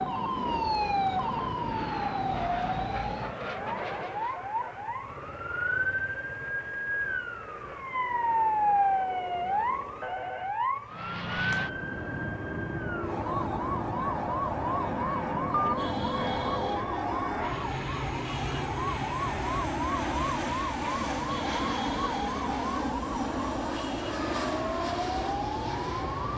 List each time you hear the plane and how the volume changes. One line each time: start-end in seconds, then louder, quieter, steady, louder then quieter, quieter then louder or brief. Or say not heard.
0.0-4.5 steady
10.8-26.3 steady.